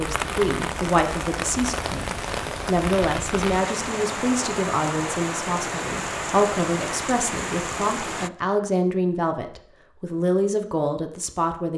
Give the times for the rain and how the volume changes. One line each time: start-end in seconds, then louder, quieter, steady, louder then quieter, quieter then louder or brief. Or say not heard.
0.0-8.3 steady.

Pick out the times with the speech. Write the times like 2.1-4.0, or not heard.
0.0-11.7.